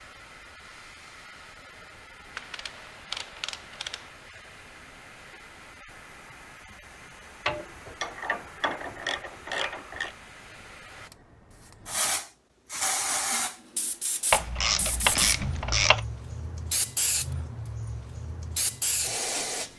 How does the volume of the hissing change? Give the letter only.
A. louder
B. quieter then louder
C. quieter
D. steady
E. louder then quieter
A.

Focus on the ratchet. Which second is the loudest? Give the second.
15 s.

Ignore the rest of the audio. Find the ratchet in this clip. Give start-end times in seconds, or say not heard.
2.4-4.0, 7.5-10.2, 14.3-16.0.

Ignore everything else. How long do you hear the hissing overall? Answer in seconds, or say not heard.
20 s.